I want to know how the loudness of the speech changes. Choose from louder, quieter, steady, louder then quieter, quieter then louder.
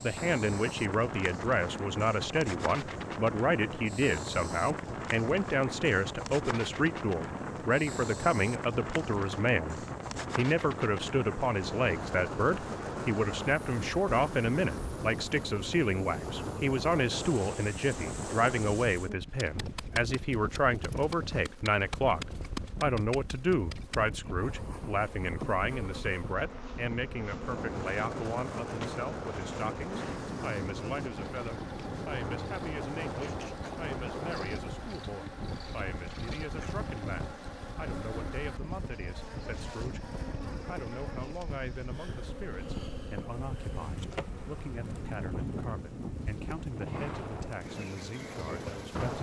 quieter.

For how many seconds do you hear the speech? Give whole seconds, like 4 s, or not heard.
49 s.